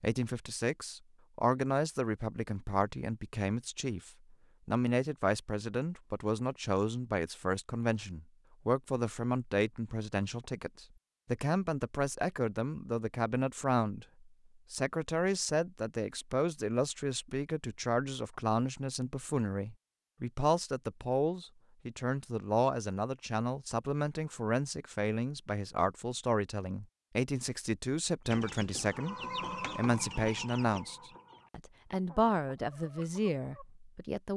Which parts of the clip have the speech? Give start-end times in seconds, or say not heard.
0.0-29.1, 29.8-34.3.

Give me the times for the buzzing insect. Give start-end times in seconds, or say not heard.
not heard.